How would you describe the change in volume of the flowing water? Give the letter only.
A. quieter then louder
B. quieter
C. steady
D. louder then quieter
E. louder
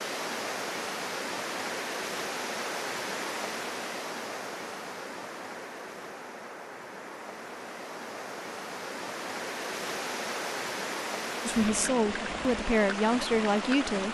A.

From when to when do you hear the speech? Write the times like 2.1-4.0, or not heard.
11.4-14.0.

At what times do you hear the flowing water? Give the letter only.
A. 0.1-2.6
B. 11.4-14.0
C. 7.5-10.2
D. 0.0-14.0
D.